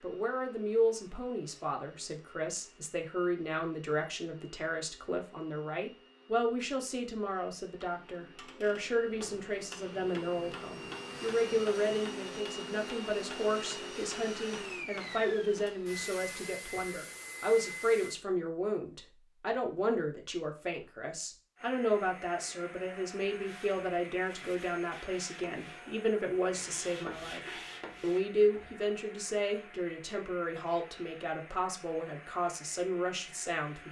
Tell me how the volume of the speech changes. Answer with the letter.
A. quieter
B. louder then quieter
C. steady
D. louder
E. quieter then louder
C.